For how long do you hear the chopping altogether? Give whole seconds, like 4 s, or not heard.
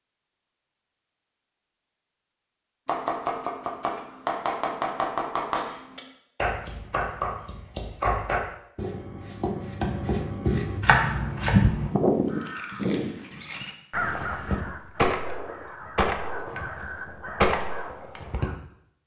9 s.